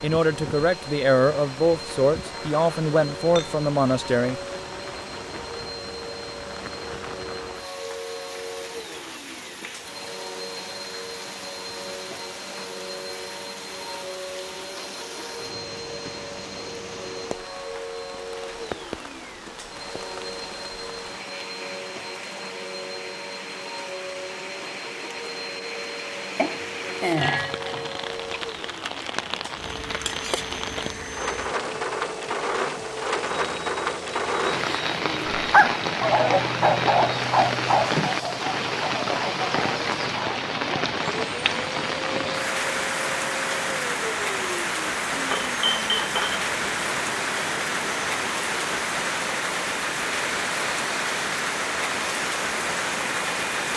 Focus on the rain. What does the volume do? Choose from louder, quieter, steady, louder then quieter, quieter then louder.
louder.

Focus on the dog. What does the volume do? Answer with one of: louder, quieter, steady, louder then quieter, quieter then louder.
quieter.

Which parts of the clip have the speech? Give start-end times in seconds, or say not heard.
0.0-4.4.